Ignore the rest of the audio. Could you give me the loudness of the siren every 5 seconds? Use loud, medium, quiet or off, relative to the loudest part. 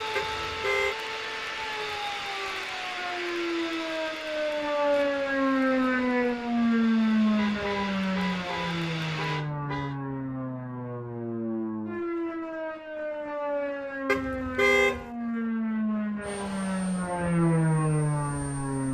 medium, loud, medium, loud.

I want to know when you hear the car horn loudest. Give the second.
15 s.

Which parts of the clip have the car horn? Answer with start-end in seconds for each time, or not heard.
0.1-0.9, 7.3-9.9, 14.1-15.1.